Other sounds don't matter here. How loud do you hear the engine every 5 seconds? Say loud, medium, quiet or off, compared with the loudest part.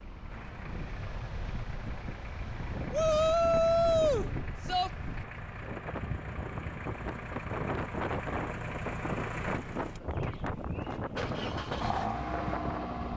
medium, loud, loud.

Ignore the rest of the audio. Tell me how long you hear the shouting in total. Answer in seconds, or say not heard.
2 s.